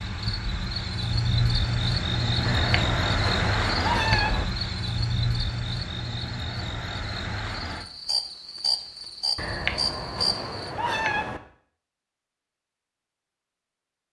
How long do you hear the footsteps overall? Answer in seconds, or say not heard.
not heard.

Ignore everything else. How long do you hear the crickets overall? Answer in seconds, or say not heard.
11 s.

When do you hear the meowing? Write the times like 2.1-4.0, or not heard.
2.5-4.5, 9.3-11.4.